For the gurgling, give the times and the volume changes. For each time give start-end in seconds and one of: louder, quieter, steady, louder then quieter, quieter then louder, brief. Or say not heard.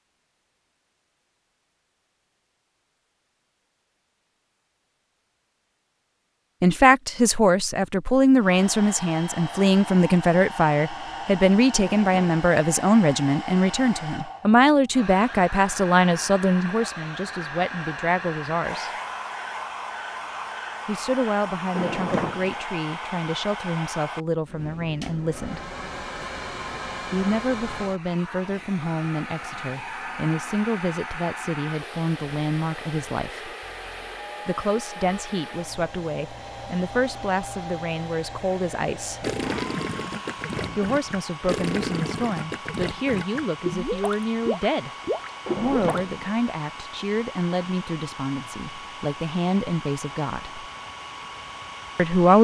39.2-46.0 steady.